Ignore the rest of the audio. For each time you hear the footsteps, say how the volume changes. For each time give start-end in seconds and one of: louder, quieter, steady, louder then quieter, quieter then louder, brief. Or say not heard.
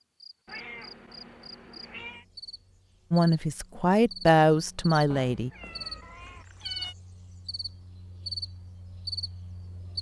not heard.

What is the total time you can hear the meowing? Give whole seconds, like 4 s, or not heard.
4 s.